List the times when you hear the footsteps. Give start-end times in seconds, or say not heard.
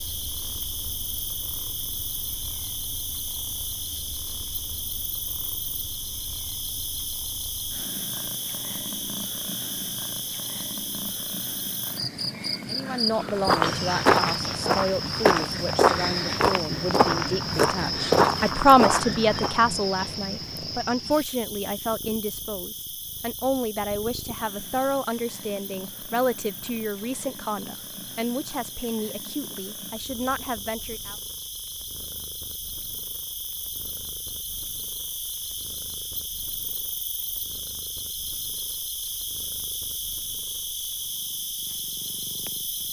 13.2-19.6.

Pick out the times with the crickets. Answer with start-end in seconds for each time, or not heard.
0.0-42.8.